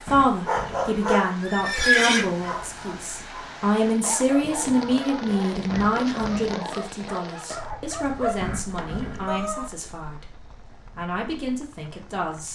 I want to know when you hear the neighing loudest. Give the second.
2 s.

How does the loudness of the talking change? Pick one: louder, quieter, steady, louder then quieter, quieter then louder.
quieter.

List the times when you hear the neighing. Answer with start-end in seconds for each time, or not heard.
0.1-2.2, 5.7-6.5, 8.4-9.6.